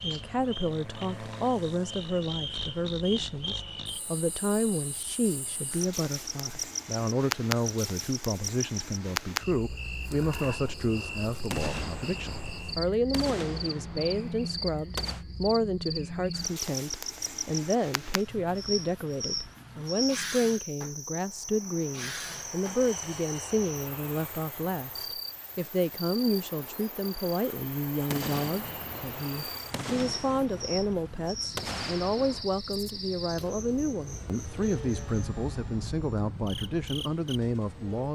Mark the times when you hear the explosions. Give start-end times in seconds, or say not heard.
11.4-15.2, 28.1-32.5.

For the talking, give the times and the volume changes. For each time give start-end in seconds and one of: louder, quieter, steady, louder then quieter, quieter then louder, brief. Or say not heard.
0.0-38.1 steady.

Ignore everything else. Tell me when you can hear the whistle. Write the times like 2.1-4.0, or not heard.
not heard.